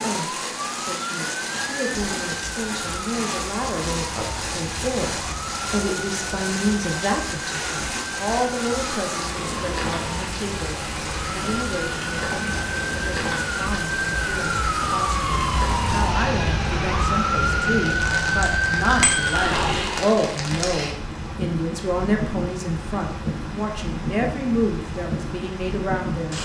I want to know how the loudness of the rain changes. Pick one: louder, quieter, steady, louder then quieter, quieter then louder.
steady.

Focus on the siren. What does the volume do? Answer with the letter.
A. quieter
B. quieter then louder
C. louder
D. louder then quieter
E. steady
C.